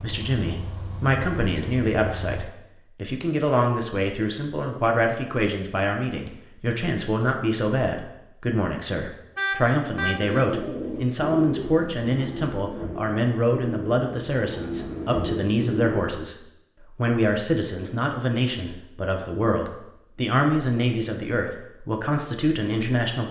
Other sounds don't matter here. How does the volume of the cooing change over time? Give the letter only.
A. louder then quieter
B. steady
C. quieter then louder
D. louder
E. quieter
C.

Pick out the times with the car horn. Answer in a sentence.
The car horn can be heard from 9.3 to 10.4 s.